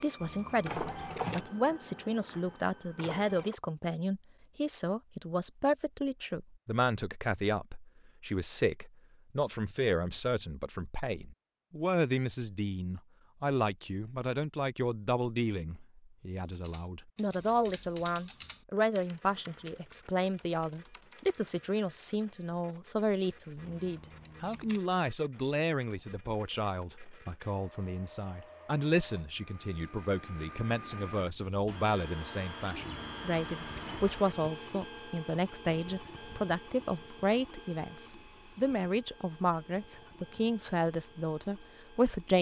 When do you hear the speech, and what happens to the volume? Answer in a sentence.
The speech can be heard from 0.0 to 42.3 s, at a steady volume.